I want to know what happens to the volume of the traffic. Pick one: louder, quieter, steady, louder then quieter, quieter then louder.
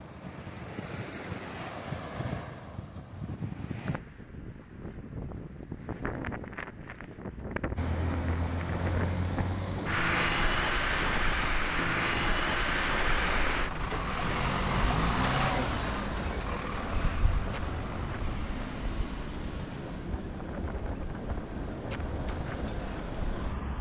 quieter.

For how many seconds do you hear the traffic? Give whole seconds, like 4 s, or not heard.
16 s.